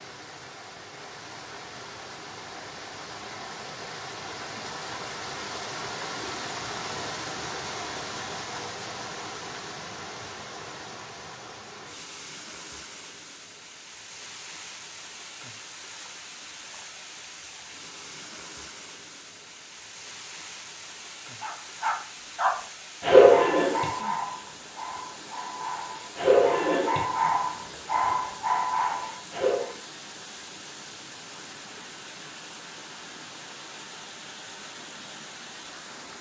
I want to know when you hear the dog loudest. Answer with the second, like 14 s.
23 s.